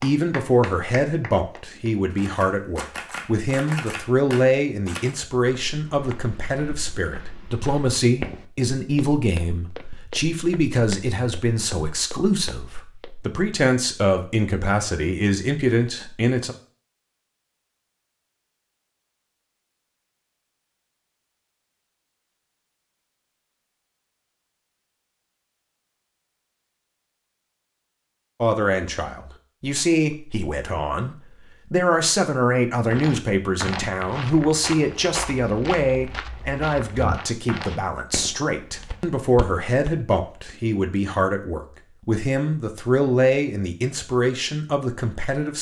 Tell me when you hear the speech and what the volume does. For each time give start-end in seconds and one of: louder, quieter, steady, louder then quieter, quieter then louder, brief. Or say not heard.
0.0-16.6 steady
28.4-45.5 steady.